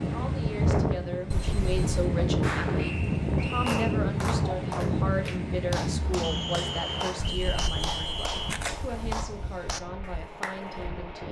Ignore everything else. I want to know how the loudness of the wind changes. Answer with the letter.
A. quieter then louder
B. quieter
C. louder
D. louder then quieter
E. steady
B.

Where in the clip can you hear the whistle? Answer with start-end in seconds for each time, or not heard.
2.8-4.0, 6.2-8.5.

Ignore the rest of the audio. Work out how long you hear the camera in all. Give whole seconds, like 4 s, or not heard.
3 s.